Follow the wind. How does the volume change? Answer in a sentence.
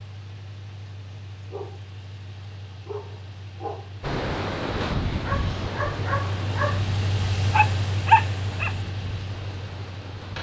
The volume of the wind goes down.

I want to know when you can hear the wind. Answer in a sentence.
You can hear the wind from 4.0 to 10.3 s.